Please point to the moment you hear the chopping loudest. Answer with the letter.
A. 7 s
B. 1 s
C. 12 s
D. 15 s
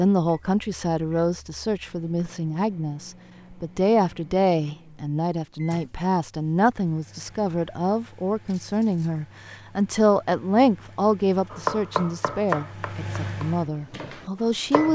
C.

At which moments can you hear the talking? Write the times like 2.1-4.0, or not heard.
0.0-14.9.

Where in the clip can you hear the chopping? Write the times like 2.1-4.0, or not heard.
11.5-14.9.